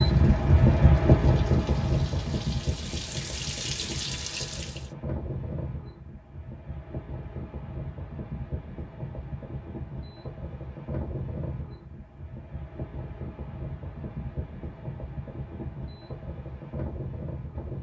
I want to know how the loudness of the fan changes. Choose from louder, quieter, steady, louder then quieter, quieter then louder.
quieter.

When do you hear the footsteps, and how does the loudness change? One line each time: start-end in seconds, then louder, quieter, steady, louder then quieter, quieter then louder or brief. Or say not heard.
not heard.